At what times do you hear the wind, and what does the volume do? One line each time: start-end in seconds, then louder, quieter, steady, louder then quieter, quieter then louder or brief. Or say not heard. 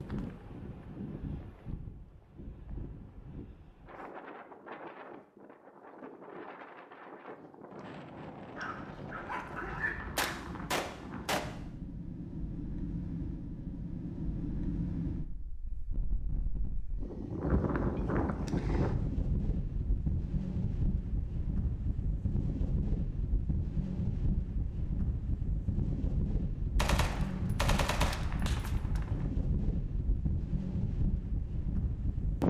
0.0-32.4 louder.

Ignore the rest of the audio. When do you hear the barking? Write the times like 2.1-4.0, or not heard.
8.6-10.3.